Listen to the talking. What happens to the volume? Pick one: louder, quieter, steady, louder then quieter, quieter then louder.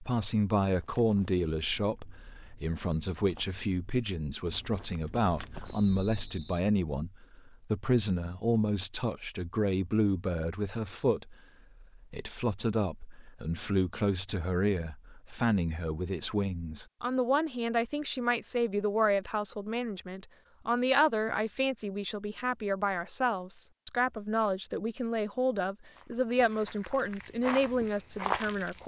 steady.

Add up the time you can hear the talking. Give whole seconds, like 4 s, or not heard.
29 s.